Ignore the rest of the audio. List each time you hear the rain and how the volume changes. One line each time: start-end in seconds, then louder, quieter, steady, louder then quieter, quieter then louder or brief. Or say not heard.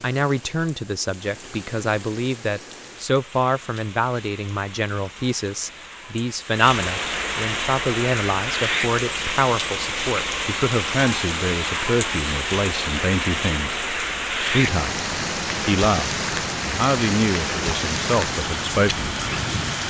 0.0-19.8 louder.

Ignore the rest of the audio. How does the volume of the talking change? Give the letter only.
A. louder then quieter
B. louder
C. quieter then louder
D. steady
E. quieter
D.